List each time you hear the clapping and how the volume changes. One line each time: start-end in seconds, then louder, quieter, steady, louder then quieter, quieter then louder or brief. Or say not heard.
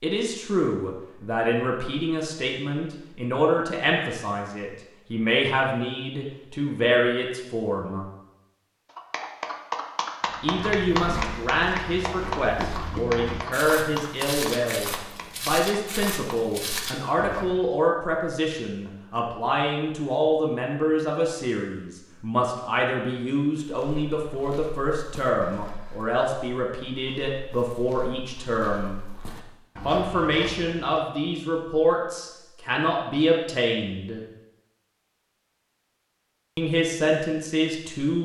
8.8-16.4 quieter.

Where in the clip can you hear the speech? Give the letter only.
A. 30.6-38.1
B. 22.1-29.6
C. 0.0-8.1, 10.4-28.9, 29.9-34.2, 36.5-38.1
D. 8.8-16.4
C.